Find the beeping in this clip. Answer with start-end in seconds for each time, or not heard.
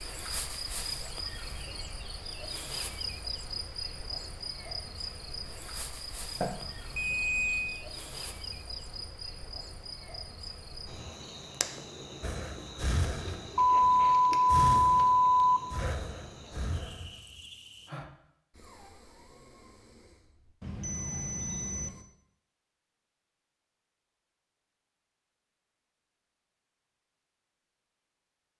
6.4-7.8, 13.6-15.6, 20.6-21.9.